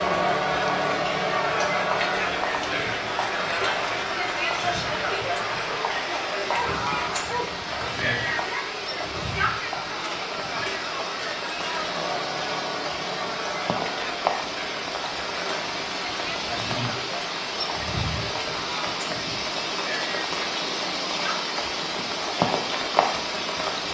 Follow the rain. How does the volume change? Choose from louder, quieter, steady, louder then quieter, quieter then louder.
louder.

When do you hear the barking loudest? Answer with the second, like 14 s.
7 s.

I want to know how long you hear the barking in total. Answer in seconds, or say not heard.
2 s.